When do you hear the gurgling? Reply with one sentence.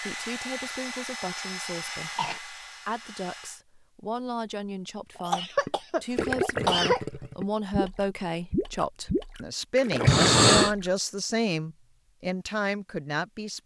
You can hear the gurgling from 5.7 to 10.9 s.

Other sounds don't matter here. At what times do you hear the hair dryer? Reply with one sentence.
You can hear the hair dryer from 0.0 to 3.6 s.